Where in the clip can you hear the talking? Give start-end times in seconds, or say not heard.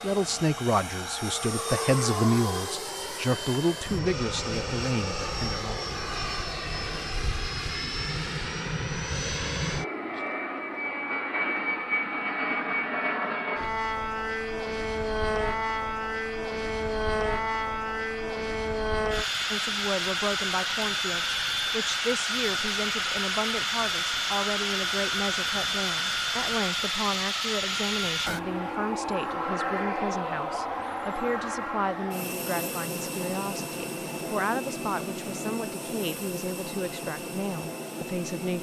0.0-5.8, 19.5-38.5.